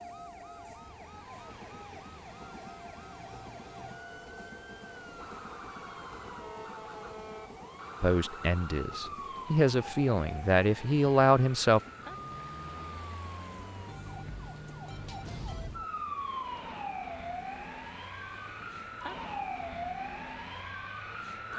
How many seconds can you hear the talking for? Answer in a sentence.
The talking can be heard for 4 seconds in total.